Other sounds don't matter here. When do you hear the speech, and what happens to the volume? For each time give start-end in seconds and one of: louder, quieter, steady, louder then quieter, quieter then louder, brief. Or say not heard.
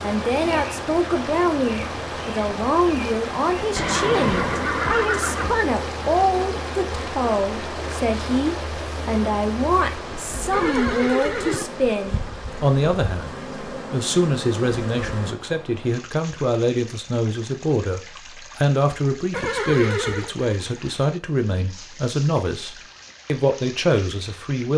0.0-24.7 steady.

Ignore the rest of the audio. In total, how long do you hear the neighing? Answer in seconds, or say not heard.
4 s.